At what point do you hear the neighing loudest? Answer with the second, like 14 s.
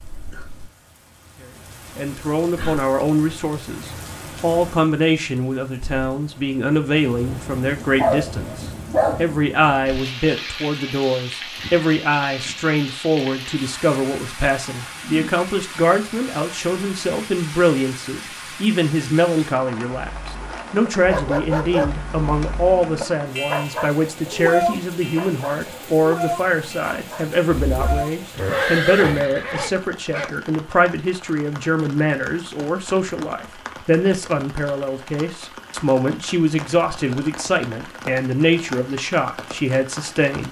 29 s.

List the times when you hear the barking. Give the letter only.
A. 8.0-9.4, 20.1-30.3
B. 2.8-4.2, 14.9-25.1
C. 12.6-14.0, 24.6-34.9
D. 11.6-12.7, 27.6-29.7
A.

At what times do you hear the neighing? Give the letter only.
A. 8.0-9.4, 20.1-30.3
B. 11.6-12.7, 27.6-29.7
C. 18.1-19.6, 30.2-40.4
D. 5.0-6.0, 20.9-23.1
B.